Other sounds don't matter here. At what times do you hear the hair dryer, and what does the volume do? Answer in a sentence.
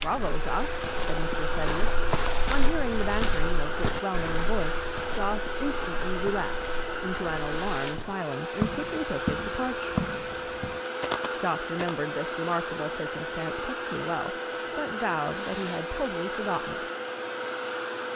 The hair dryer can be heard from 0.0 to 18.1 s, at a steady volume.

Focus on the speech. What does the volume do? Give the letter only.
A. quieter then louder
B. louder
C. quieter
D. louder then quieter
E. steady
E.